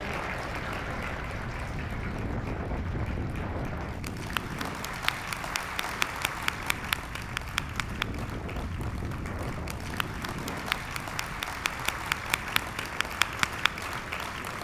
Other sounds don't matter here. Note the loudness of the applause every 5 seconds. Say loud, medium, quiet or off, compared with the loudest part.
medium, loud, loud.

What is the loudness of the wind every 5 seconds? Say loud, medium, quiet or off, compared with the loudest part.
loud, loud, medium.